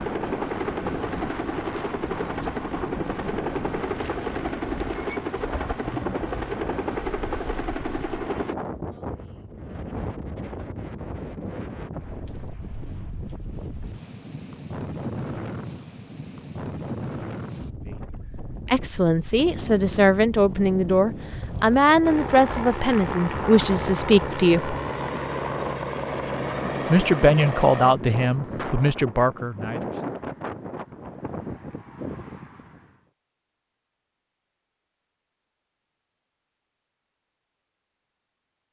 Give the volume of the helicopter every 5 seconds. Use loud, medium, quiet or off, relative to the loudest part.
loud, loud, off, off, loud, loud, off, off.